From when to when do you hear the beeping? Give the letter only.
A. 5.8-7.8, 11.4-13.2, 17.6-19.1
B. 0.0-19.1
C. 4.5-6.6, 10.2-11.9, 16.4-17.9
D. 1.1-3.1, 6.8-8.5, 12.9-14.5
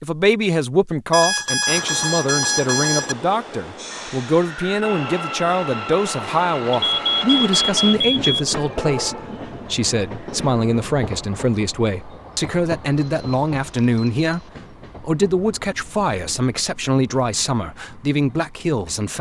D.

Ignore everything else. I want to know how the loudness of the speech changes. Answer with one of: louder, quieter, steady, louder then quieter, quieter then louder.
steady.